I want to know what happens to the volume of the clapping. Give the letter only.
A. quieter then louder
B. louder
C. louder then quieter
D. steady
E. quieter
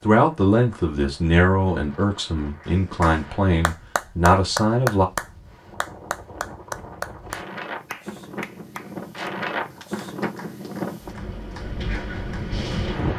E.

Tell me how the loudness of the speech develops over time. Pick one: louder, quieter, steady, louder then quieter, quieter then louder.
quieter then louder.